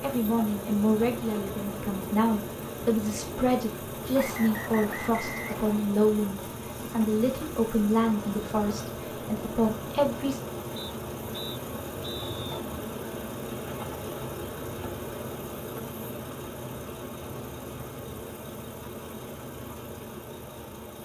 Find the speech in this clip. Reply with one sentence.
The speech can be heard from 0.0 to 10.4 s.